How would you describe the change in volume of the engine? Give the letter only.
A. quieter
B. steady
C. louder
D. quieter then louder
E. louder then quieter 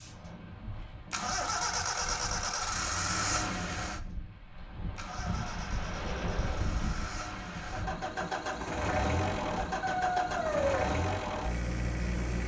D.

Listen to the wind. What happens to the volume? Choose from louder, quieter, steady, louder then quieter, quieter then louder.
louder then quieter.